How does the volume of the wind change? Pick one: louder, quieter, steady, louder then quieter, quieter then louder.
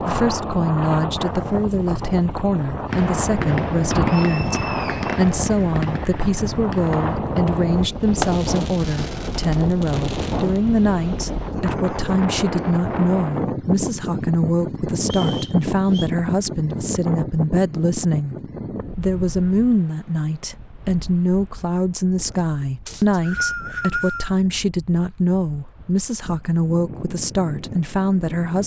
quieter.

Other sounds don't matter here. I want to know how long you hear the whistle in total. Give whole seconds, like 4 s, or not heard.
4 s.